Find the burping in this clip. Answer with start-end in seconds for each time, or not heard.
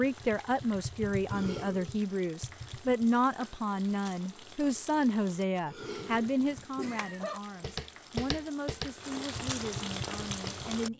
1.2-2.0, 5.7-7.4.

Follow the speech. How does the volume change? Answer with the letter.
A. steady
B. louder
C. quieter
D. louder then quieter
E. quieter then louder
C.